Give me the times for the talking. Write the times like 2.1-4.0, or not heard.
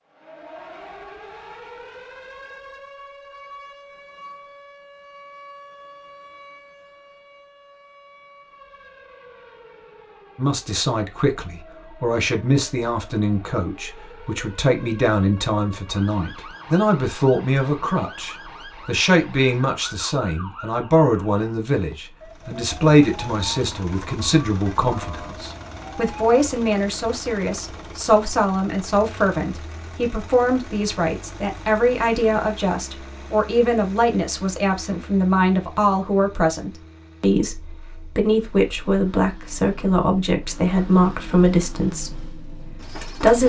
10.3-43.4.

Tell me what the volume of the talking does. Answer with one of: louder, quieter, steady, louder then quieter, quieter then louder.
steady.